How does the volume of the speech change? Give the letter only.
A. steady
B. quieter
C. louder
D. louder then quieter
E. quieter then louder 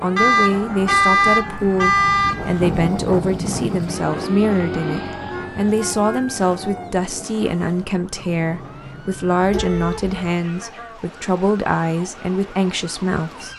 A.